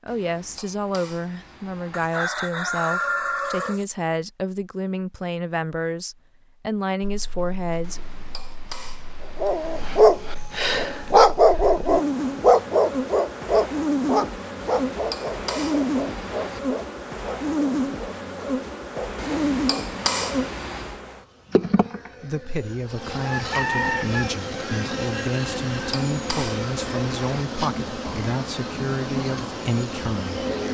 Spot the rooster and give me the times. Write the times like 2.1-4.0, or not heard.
1.9-3.9, 23.2-24.4.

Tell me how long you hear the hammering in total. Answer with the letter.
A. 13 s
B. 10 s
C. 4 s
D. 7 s
B.